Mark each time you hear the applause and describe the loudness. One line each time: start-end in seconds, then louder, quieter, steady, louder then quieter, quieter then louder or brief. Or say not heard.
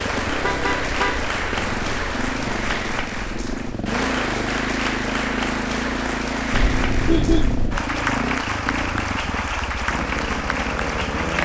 0.0-11.4 steady.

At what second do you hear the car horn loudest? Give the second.
7 s.